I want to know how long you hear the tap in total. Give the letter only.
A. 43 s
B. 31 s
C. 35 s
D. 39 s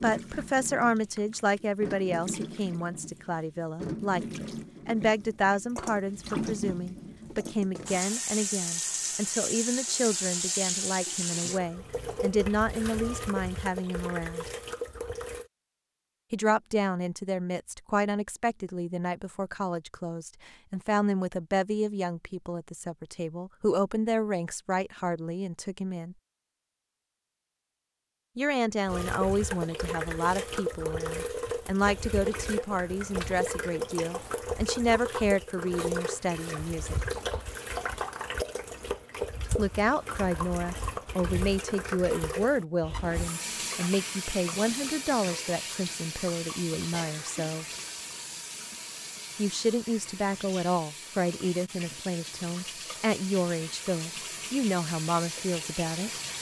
A.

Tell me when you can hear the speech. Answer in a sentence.
You can hear the speech from 0.0 to 14.5 s, from 16.3 to 26.1 s, from 28.4 to 37.0 s, from 39.5 to 47.6 s and from 49.4 to 56.1 s.